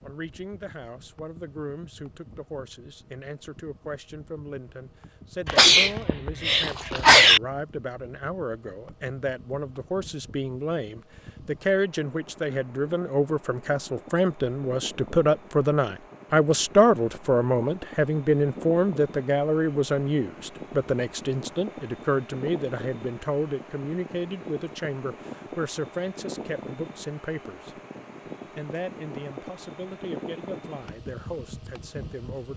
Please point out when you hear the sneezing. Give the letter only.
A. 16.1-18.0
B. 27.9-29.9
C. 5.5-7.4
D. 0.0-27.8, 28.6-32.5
C.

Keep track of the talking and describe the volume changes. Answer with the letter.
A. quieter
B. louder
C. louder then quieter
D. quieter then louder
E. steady
C.